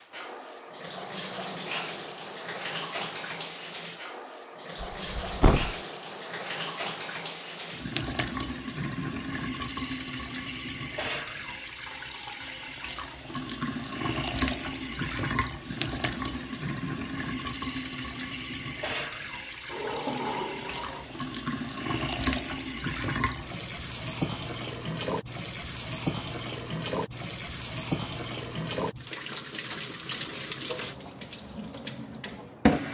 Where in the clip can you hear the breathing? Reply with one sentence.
You can't hear the breathing here.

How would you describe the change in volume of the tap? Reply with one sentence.
The loudness of the tap stays about the same.